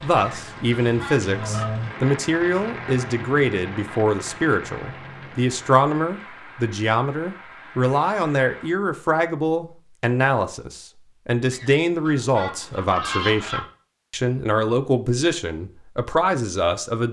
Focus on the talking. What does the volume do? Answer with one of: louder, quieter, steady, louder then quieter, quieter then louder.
steady.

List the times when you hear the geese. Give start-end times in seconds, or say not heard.
0.1-1.7, 11.5-13.7.